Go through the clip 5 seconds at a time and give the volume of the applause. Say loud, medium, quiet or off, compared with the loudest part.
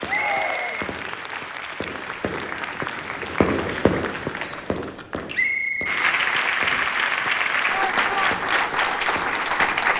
medium, loud.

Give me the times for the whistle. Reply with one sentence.
You can hear the whistle from 0.1 to 1.4 s and from 5.3 to 6.0 s.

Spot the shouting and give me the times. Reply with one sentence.
The shouting can be heard from 0.0 to 0.9 s and from 7.7 to 8.3 s.